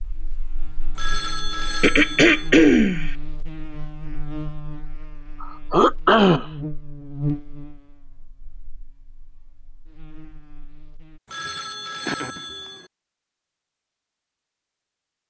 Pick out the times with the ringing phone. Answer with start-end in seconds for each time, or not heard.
0.9-2.5, 11.2-12.9.